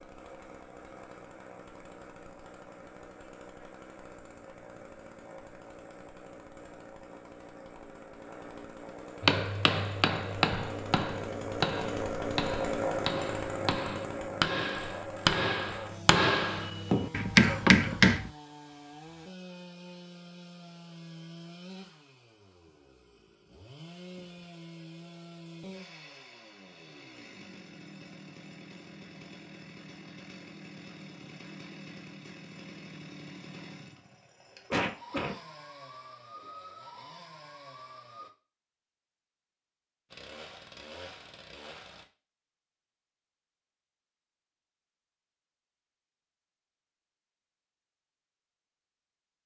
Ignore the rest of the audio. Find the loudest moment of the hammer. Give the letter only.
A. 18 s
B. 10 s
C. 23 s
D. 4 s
A.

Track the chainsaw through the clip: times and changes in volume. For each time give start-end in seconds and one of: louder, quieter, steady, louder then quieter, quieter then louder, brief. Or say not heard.
0.0-38.3 louder then quieter
40.1-42.0 brief.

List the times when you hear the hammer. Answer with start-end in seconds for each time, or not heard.
9.2-18.3.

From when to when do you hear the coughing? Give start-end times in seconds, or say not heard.
17.4-18.1, 34.7-35.4.